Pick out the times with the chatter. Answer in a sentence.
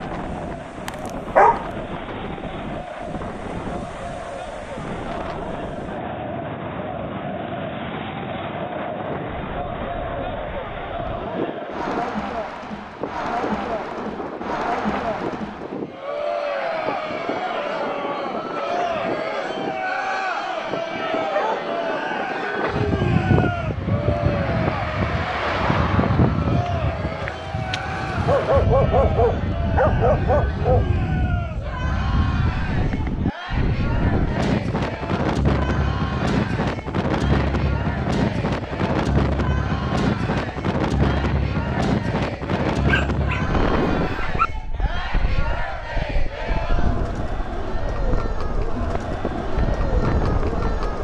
You can hear the chatter from 0.0 to 50.9 s.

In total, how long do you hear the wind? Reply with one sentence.
You can hear the wind for 51 seconds altogether.